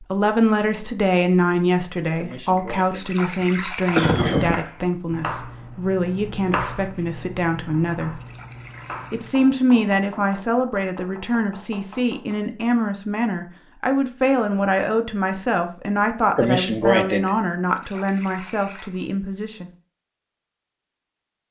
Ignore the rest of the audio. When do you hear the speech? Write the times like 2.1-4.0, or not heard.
0.0-8.2, 9.1-19.7.